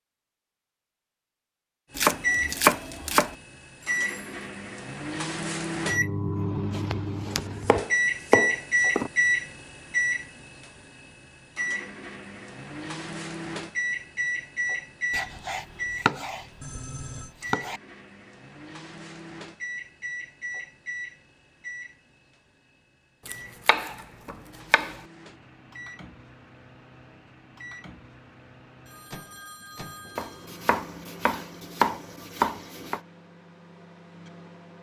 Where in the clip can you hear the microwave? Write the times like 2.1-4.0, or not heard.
1.9-34.7.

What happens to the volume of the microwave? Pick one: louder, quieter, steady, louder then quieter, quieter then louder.
quieter.